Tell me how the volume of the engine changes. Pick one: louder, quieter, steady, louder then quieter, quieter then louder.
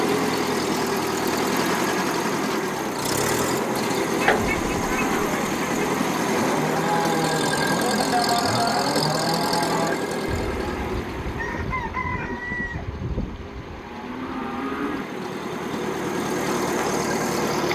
quieter then louder.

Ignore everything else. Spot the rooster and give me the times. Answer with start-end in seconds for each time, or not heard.
11.3-12.8.